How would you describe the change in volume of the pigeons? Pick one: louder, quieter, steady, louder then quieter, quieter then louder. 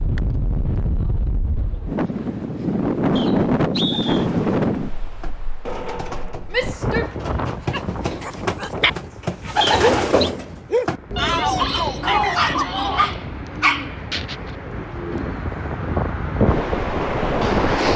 louder then quieter.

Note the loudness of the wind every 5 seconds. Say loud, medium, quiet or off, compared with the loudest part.
loud, medium, quiet, loud.